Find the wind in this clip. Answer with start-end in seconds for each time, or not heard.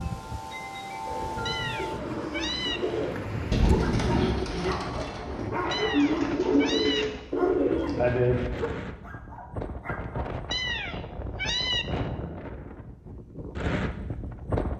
0.0-14.7.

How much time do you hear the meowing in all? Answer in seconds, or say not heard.
4 s.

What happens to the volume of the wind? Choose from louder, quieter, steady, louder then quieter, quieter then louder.
steady.